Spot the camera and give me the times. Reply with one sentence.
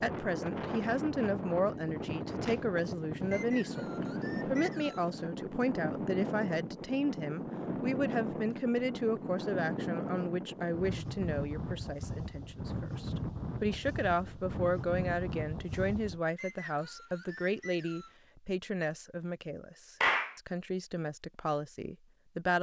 The camera can't be heard in this clip.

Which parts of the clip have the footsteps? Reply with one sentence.
The footsteps can't be heard in this clip.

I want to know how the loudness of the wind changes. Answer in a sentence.
The volume of the wind stays about the same.